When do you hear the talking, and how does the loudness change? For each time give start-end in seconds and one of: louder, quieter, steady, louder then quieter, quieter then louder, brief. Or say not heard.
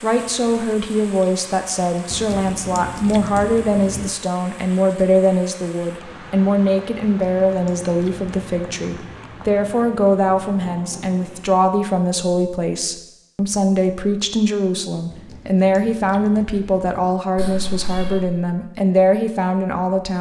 0.0-20.1 steady.